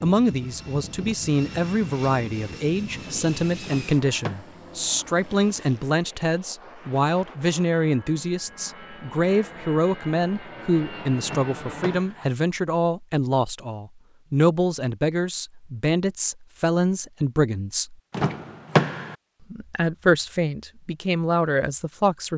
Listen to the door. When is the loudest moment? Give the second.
19 s.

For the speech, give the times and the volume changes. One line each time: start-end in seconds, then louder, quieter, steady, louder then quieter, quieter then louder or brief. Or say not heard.
0.0-17.9 steady
19.5-22.3 brief.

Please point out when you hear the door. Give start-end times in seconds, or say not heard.
3.6-4.5, 11.2-12.2, 18.1-19.1.